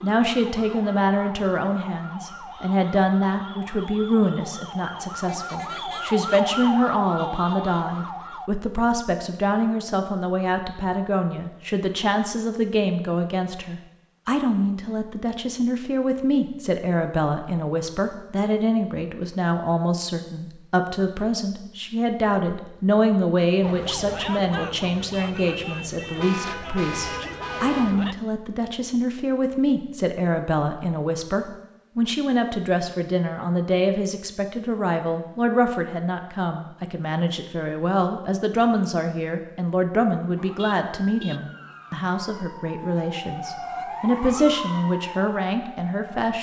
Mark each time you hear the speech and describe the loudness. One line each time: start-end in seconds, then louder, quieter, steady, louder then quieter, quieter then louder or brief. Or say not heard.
0.0-46.3 steady.